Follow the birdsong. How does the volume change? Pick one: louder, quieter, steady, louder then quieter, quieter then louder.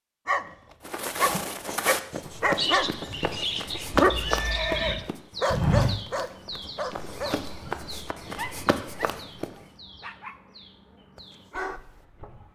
quieter.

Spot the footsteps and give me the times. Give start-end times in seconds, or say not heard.
0.8-9.5.